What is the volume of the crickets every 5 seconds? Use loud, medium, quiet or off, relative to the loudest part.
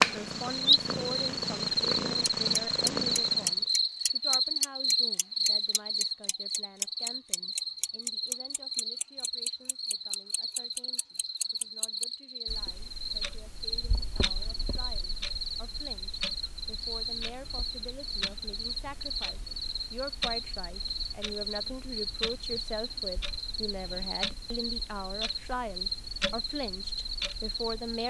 loud, medium, medium, medium, medium, medium.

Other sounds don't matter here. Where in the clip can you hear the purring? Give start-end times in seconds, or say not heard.
0.0-3.7.